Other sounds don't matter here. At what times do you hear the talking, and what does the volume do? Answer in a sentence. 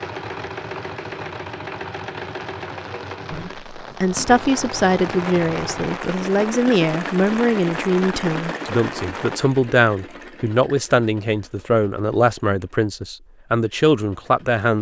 The talking can be heard from 3.3 to 14.7 s, at a steady volume.